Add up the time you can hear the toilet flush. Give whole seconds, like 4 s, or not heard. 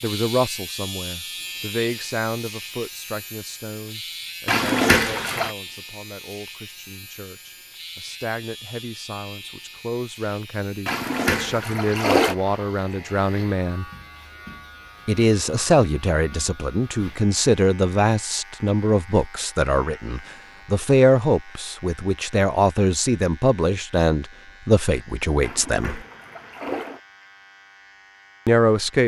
4 s.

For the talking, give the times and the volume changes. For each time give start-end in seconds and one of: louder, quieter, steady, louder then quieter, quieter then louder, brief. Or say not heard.
0.0-13.8 quieter then louder
15.1-26.0 steady
28.4-29.0 brief.